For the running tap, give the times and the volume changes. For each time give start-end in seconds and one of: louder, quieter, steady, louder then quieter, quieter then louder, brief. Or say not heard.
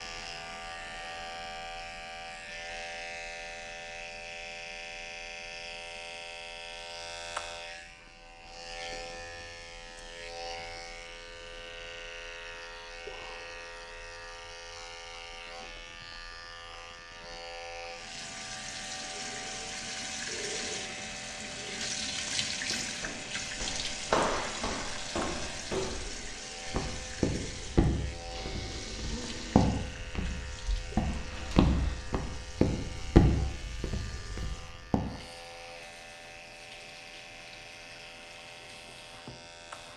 17.9-39.9 quieter.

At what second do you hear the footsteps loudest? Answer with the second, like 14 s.
33 s.